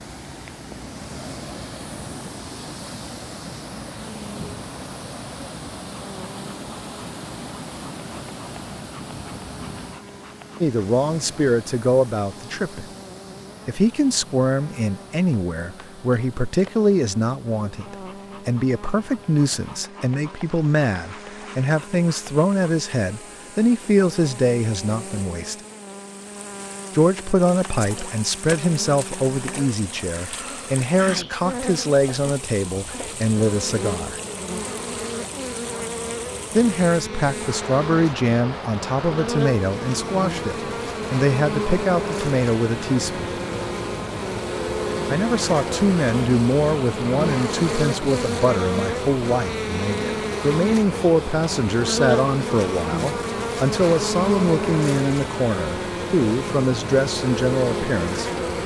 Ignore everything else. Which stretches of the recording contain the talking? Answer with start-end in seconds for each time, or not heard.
10.6-12.8, 13.7-25.6, 26.9-34.2, 36.5-43.2, 45.1-58.6.